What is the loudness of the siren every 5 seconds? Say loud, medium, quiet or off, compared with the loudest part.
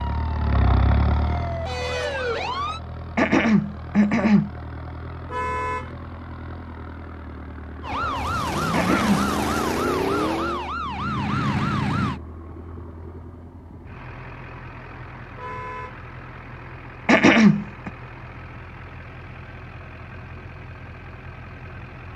medium, loud, loud, off, off.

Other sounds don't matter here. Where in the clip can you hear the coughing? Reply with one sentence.
You can hear the coughing from 3.1 to 4.5 s, from 8.7 to 9.2 s and from 17.1 to 17.9 s.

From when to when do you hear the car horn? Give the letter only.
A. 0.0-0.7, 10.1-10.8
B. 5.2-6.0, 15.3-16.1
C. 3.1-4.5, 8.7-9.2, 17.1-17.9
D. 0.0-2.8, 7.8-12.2
B.